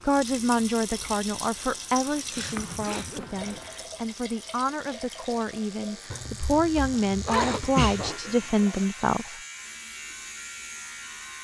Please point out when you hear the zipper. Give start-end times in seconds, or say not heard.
2.4-3.7, 6.8-8.2.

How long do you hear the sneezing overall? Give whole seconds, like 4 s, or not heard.
3 s.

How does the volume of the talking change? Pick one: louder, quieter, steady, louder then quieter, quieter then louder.
quieter then louder.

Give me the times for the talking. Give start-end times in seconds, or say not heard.
0.1-9.4.